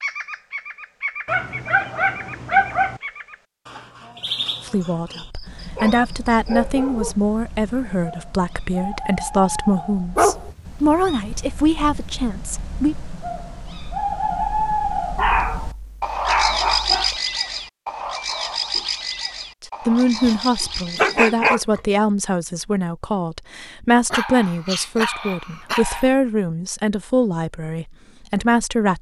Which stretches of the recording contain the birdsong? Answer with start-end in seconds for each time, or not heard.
0.0-21.5.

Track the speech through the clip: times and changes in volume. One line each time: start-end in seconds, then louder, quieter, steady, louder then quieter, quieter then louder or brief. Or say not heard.
4.7-12.9 steady
19.6-28.9 steady.